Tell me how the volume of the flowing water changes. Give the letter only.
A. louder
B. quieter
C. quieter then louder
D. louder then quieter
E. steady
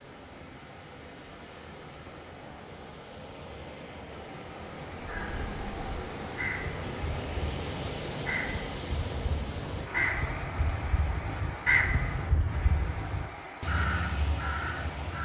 D.